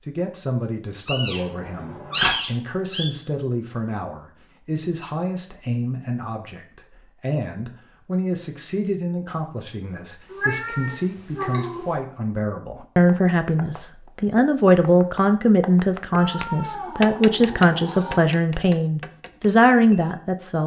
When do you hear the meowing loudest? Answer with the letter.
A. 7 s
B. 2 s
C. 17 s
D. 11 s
B.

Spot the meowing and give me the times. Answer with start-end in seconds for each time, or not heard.
1.1-3.0, 10.3-11.9, 16.1-18.2.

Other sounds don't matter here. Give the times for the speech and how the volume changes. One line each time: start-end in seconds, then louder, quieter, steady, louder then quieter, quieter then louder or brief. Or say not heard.
0.0-20.6 louder.